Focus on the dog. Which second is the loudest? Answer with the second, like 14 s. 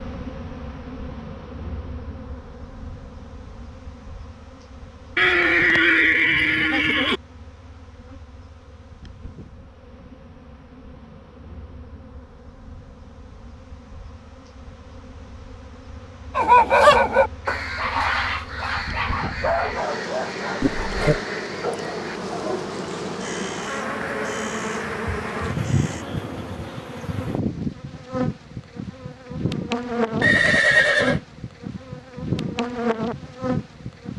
17 s.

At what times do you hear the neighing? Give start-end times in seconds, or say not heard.
5.2-7.2, 20.6-21.2, 30.2-31.2.